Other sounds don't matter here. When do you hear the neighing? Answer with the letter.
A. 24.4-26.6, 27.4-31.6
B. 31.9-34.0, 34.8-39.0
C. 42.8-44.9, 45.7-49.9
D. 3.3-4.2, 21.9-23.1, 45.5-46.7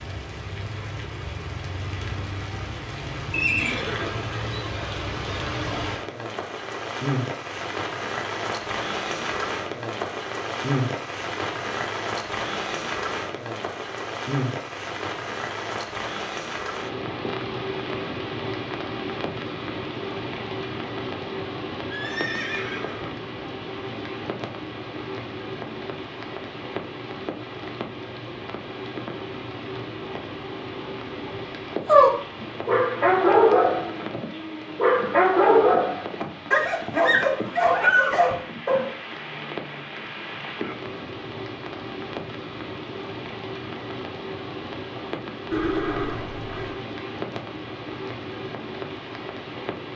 D.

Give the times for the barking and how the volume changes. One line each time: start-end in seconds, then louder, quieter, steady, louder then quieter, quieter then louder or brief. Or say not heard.
31.9-34.0 brief
34.8-39.0 quieter then louder.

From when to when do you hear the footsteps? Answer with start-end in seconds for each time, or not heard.
not heard.